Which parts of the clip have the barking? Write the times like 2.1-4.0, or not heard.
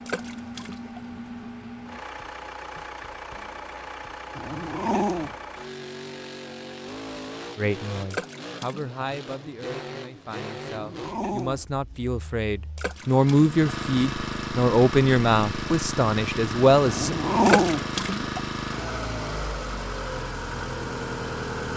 4.3-5.3, 10.7-11.7, 16.9-17.9.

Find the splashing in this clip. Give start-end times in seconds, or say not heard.
0.1-1.0, 8.1-9.1, 12.8-13.6, 17.4-18.4.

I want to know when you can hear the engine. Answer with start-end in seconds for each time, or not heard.
0.0-21.7.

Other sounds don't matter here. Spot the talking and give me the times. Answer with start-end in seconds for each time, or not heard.
7.5-17.1.